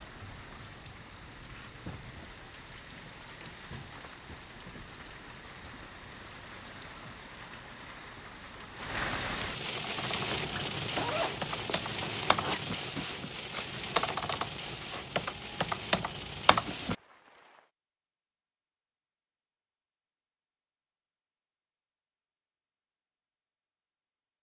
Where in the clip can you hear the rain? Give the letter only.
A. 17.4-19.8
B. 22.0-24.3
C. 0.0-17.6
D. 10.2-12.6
C.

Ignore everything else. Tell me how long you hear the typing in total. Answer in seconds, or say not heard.
7 s.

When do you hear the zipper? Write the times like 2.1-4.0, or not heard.
10.2-12.6.